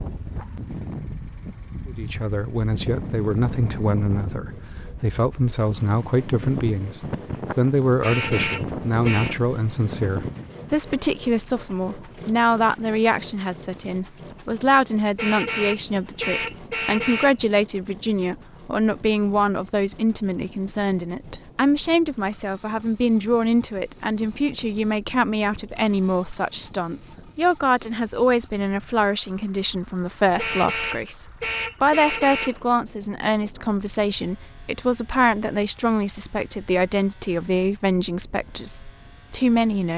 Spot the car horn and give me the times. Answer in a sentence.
You can hear the car horn from 8.0 to 9.3 s, from 15.2 to 17.4 s and from 30.4 to 32.5 s.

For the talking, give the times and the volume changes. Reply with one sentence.
You can hear the talking from 1.9 to 39.9 s, at a steady volume.